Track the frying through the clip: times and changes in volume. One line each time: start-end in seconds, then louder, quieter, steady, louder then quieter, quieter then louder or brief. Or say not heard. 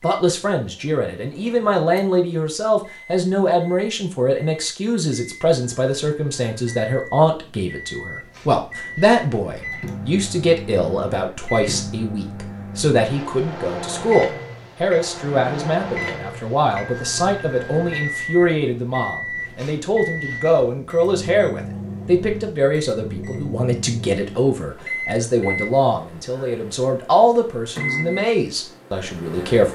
not heard.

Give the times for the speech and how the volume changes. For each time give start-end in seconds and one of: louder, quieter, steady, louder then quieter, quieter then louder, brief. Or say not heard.
0.0-29.7 steady.